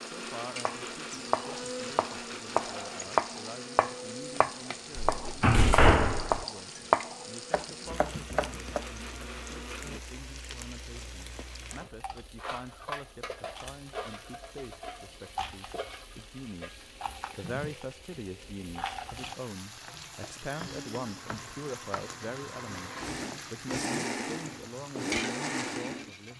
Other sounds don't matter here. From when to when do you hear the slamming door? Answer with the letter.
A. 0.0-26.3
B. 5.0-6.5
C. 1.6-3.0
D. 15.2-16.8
B.